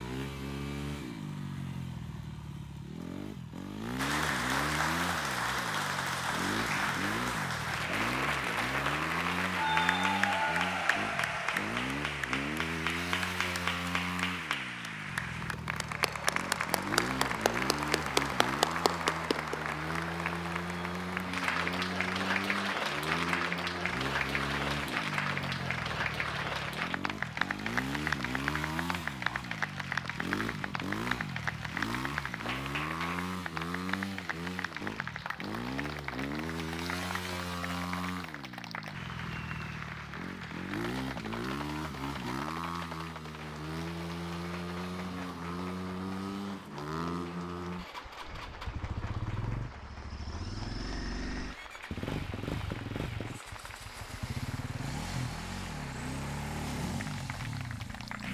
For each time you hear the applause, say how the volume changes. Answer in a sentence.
The applause can be heard from 4.0 to 58.2 s, getting quieter.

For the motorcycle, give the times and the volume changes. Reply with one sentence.
The motorcycle can be heard from 0.0 to 58.2 s, at a steady volume.